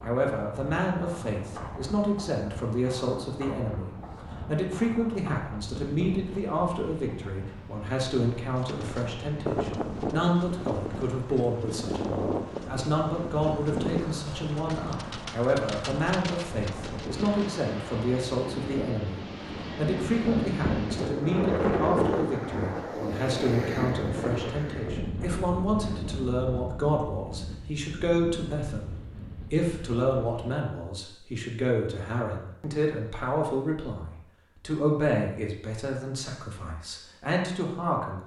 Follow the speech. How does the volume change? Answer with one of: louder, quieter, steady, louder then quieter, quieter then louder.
steady.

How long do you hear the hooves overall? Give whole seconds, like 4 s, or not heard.
9 s.